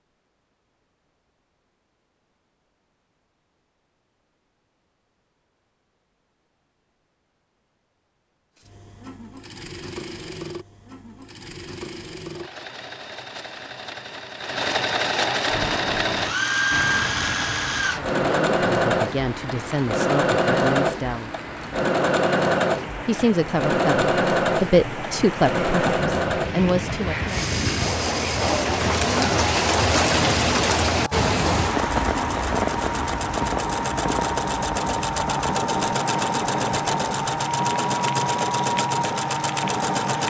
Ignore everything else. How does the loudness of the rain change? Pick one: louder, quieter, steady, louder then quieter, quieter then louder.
louder then quieter.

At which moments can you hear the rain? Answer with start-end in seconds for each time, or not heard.
15.4-40.2.